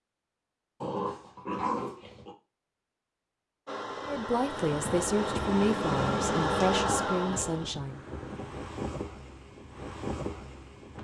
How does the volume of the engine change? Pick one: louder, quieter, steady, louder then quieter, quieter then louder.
louder then quieter.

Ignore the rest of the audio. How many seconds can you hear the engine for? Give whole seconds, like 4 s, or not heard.
5 s.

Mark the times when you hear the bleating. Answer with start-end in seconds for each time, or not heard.
not heard.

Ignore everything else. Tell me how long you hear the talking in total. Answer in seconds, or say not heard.
4 s.